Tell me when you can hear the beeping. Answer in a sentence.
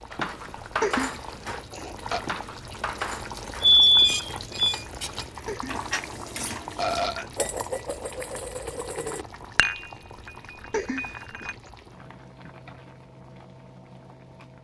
The beeping can be heard from 3.6 to 4.8 s.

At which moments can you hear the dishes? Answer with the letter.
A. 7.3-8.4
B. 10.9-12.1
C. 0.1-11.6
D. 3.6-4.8
C.